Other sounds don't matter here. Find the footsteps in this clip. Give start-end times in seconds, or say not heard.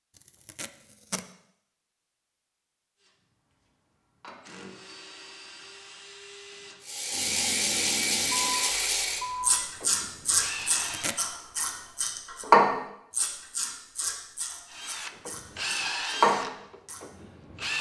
not heard.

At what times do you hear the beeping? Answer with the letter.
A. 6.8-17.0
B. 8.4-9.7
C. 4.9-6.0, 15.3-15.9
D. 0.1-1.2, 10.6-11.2
B.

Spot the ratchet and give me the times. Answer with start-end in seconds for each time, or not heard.
6.8-17.0.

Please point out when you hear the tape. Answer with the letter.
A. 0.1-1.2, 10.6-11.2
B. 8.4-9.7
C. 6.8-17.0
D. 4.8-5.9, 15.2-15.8
A.